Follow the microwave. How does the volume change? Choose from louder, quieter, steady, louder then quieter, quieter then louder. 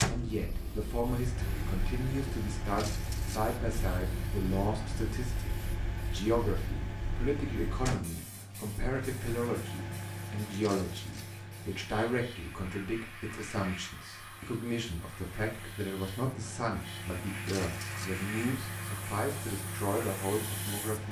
quieter then louder.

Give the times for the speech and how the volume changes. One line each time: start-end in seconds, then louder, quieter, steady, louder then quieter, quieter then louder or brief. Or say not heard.
0.1-21.0 steady.